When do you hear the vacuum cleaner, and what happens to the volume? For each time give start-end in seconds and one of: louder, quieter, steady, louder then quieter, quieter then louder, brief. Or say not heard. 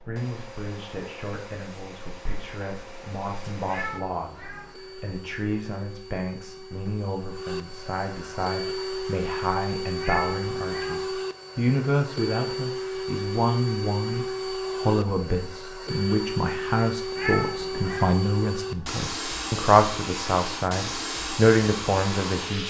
0.0-22.6 louder.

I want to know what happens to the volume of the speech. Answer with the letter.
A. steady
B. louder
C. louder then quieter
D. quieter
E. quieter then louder
B.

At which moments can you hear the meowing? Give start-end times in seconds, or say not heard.
3.6-4.7, 10.0-11.1, 17.1-18.2.